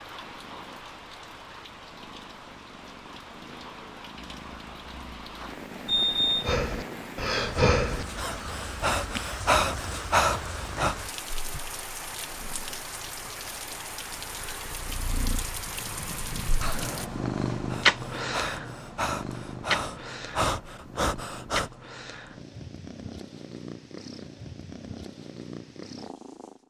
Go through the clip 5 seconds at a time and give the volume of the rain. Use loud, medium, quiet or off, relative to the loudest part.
medium, loud, loud, loud, off, off.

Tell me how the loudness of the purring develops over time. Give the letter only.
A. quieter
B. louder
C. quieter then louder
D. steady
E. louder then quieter
E.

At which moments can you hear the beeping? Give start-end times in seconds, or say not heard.
5.8-6.5.